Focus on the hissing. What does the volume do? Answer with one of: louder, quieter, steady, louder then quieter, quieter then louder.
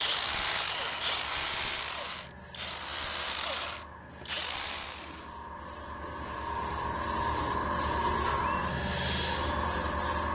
louder.